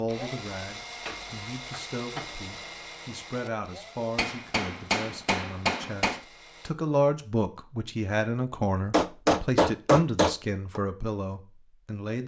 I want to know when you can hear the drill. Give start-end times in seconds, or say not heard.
0.0-6.8.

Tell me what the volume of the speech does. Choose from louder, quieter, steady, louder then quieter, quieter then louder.
louder.